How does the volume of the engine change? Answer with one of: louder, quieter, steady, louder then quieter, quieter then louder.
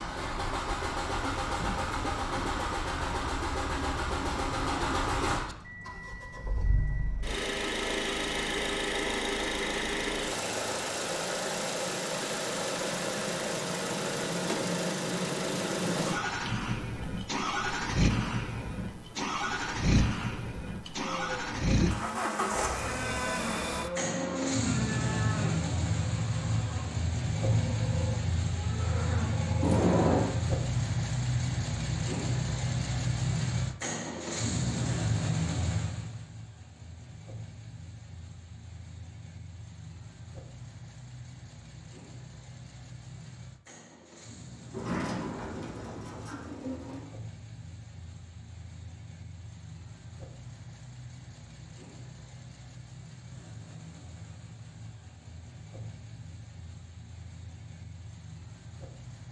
quieter.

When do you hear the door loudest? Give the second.
30 s.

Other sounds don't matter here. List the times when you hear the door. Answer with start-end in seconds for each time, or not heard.
1.6-2.6, 29.6-30.2, 44.7-47.1.